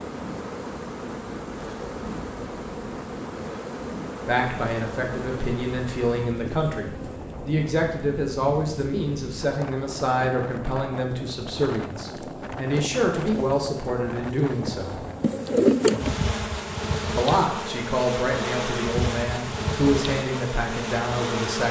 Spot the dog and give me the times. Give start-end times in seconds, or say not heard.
not heard.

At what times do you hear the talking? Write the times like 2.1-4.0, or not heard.
4.2-15.0, 17.1-21.6.